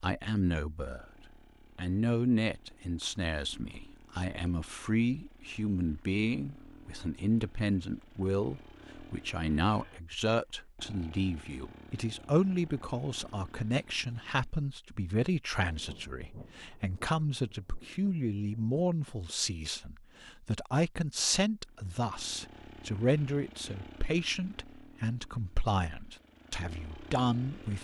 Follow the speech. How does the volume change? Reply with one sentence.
The volume of the speech stays about the same.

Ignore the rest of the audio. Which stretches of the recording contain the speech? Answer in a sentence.
You can hear the speech from 0.0 to 27.8 s.